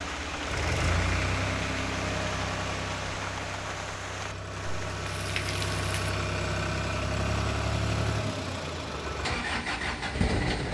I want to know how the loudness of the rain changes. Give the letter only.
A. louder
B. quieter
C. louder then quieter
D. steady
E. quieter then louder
D.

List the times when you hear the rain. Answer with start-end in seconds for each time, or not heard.
0.0-6.2.